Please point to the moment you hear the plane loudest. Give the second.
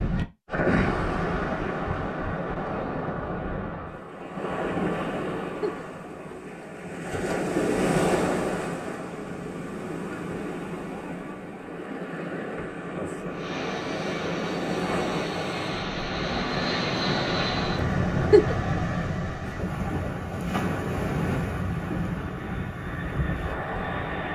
17 s.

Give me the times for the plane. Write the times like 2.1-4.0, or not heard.
13.3-24.2.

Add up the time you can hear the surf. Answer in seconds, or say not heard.
24 s.